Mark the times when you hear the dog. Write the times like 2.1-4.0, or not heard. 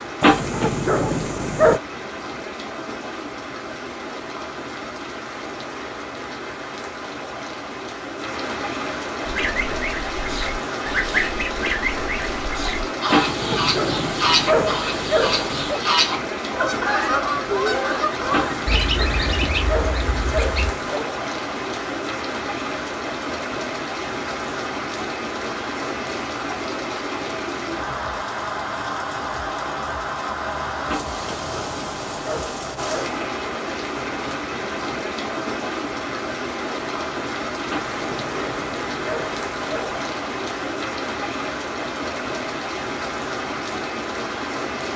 0.2-1.8, 13.1-15.8, 18.3-21.1, 30.9-33.1, 37.6-40.0.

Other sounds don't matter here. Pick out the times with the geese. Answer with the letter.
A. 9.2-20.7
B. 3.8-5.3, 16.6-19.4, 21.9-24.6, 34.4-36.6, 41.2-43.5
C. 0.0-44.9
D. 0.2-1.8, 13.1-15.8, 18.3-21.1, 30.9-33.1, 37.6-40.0
A.